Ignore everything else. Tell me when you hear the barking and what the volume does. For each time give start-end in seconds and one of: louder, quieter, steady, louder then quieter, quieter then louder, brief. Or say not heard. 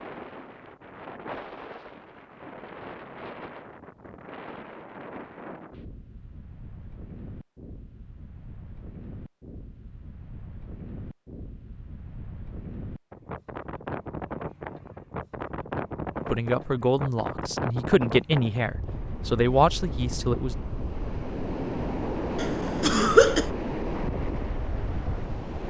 not heard.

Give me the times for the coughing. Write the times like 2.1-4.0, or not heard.
22.4-23.4.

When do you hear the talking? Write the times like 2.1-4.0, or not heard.
16.3-20.6.